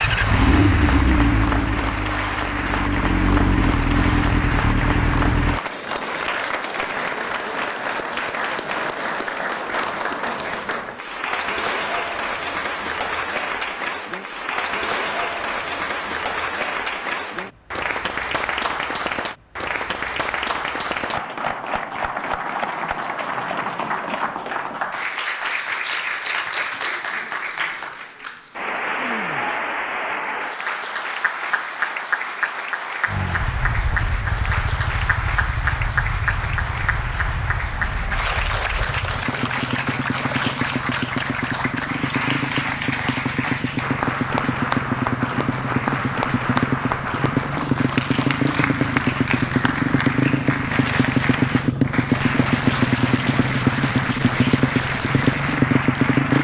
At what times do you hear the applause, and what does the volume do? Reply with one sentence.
You can hear the applause from 0.0 to 56.3 s, at a steady volume.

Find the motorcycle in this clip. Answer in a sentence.
You can hear the motorcycle from 0.0 to 5.6 s and from 33.0 to 56.3 s.